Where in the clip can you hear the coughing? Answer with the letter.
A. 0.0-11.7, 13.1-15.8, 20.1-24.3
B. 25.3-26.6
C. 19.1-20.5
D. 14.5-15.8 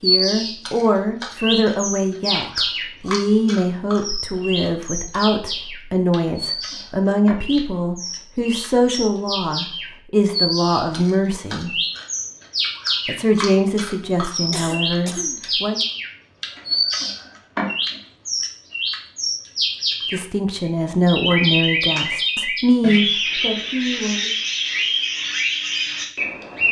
D.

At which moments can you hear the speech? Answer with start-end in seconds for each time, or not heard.
0.0-11.7, 13.1-15.8, 20.1-24.3.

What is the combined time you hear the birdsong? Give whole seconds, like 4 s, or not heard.
26 s.